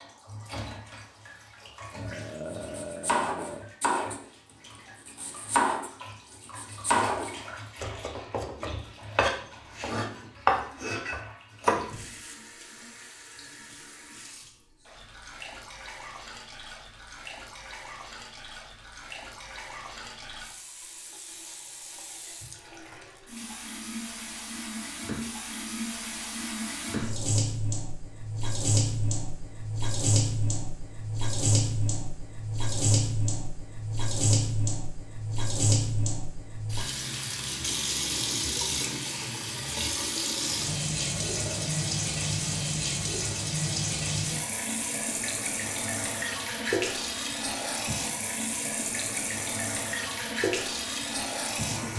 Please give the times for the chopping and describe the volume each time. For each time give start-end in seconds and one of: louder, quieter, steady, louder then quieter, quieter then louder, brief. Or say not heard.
2.5-4.2 brief
5.0-11.8 quieter then louder.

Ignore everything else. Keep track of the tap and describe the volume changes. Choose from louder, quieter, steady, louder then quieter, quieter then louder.
louder.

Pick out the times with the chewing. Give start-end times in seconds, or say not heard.
not heard.